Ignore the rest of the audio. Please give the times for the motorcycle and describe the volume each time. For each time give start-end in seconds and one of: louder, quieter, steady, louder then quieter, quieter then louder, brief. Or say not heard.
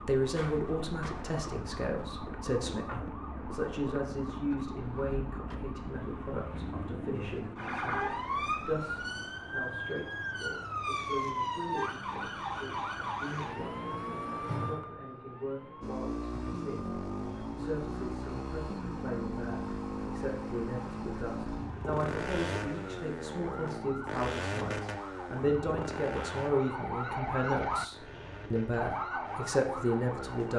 0.0-9.1 steady
15.8-30.5 quieter.